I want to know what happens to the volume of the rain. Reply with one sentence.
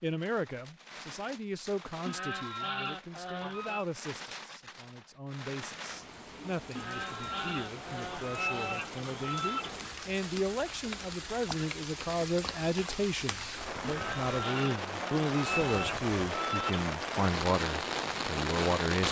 The loudness of the rain goes up.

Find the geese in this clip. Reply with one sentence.
The geese can be heard from 2.0 to 3.9 s, from 6.8 to 9.8 s and from 13.8 to 16.9 s.